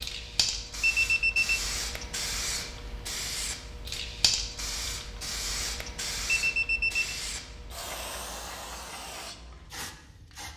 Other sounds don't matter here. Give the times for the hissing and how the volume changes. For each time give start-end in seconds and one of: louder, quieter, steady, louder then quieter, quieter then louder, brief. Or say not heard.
0.0-10.5 quieter.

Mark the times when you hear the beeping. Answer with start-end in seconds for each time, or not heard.
0.8-1.6, 6.4-7.1.